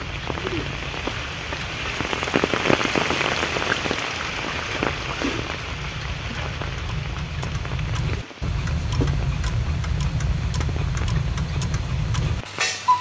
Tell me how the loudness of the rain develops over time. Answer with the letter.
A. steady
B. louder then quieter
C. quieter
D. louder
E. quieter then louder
C.